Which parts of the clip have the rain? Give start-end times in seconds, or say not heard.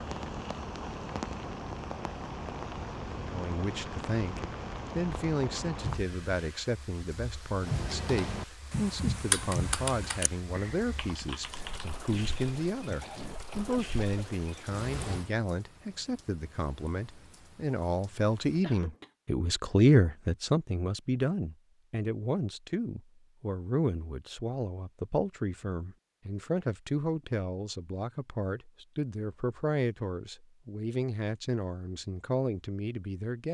0.0-18.6.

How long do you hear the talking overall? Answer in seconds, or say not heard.
30 s.